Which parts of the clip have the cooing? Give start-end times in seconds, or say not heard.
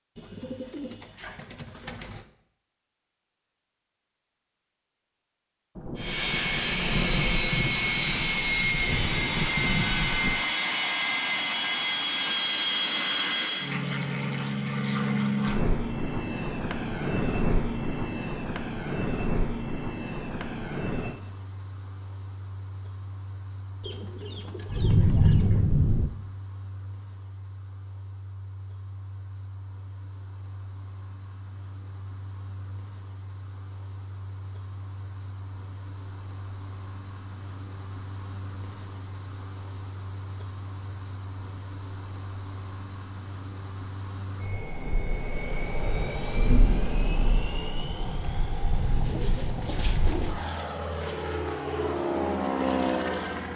0.1-2.2, 23.8-25.6, 48.7-50.4.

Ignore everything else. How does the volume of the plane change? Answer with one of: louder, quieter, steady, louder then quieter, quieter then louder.
quieter then louder.